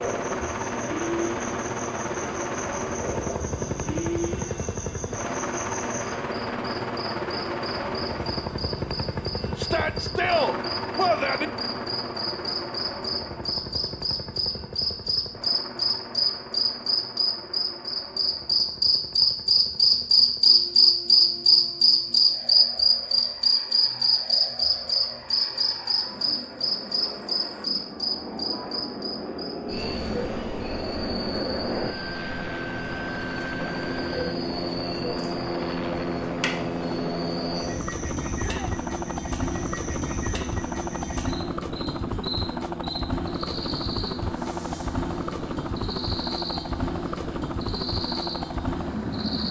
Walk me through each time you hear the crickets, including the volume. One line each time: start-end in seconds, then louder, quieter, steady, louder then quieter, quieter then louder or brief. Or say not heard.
0.0-49.4 louder then quieter.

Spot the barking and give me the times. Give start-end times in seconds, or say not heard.
not heard.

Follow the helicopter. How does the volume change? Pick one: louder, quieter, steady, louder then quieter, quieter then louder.
quieter then louder.